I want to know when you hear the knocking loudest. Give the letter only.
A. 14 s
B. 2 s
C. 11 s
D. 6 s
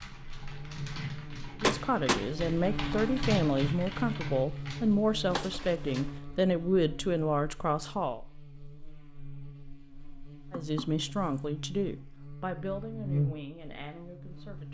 B.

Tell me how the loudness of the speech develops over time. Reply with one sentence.
The volume of the speech goes down.